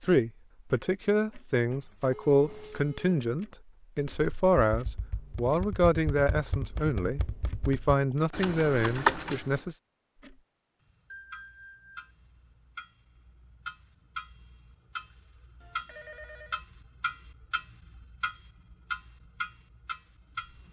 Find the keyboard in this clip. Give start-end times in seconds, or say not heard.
4.0-9.7.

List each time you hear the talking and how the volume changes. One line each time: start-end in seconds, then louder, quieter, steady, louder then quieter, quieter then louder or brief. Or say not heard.
0.0-9.8 steady.